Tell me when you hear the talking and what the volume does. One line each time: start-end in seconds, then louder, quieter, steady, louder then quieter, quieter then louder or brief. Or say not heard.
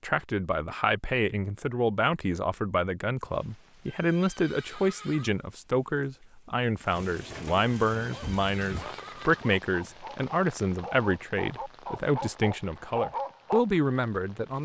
0.0-14.6 steady.